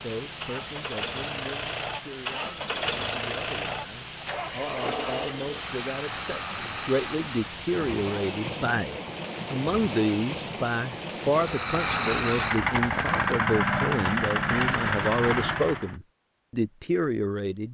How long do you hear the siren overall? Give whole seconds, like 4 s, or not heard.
not heard.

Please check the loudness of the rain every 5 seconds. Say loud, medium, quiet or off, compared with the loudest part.
loud, loud, loud, off.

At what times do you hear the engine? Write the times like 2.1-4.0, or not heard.
0.2-7.5, 11.3-15.9.